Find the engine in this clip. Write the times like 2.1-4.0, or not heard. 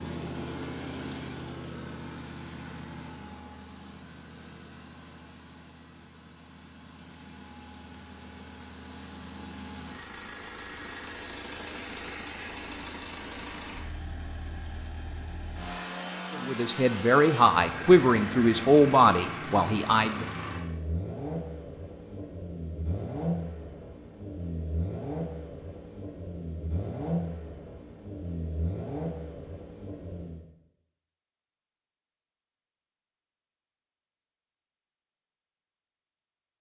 0.0-30.4.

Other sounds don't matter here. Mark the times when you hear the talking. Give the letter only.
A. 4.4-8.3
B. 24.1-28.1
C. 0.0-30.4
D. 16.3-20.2
D.